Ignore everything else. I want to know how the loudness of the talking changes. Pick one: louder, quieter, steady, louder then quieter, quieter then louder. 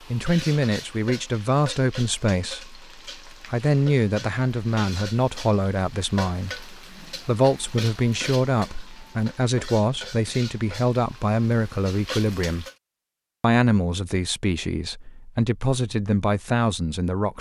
steady.